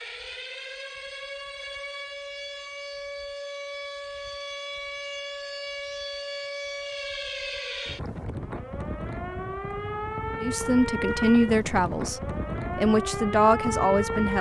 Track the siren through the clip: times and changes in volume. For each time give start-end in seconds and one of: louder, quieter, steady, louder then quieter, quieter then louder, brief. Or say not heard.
0.0-14.3 louder.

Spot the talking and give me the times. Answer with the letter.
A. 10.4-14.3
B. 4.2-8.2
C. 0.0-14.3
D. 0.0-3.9
A.